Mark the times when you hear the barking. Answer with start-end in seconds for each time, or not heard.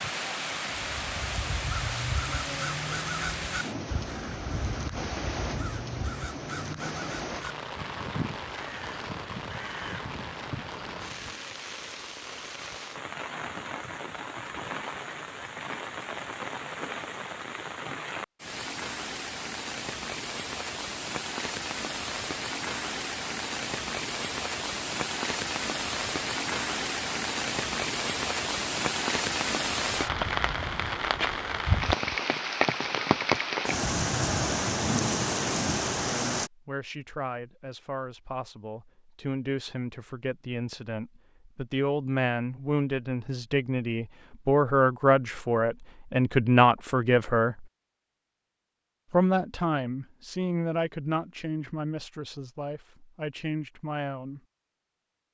not heard.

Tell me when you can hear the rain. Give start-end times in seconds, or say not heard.
0.0-36.5.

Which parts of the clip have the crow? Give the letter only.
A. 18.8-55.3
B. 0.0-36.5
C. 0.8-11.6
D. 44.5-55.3
C.